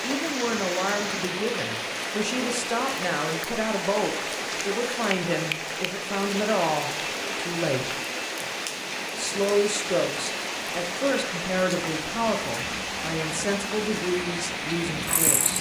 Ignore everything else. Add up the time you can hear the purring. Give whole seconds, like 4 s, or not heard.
3 s.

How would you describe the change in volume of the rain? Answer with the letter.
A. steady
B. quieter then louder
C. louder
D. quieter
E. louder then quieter
A.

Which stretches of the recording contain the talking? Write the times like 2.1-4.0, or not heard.
0.0-8.0, 9.1-15.5.